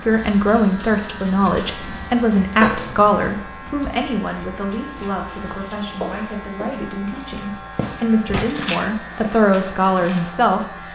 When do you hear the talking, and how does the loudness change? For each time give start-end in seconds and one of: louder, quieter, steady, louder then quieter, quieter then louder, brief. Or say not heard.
0.0-10.8 quieter then louder.